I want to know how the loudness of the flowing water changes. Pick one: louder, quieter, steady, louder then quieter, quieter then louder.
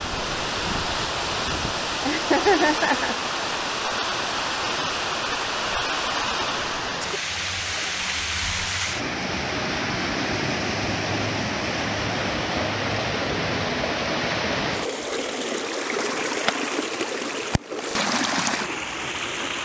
steady.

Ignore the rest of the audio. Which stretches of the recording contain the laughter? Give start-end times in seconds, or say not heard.
2.0-3.1.